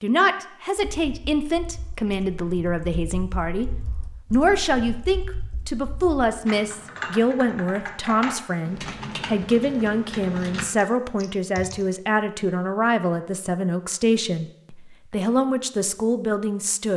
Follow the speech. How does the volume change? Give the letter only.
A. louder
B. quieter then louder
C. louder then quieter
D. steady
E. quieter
D.